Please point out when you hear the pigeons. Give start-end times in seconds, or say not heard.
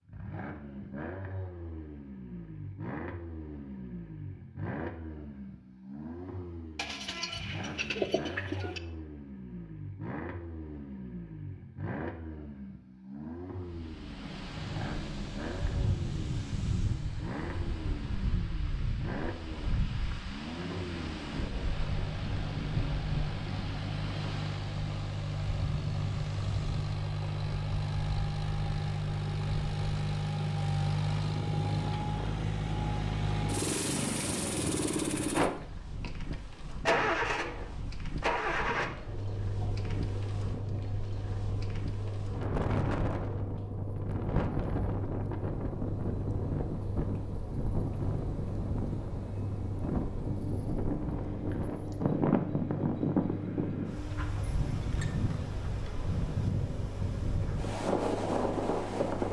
6.8-8.8.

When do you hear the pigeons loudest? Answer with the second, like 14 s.
8 s.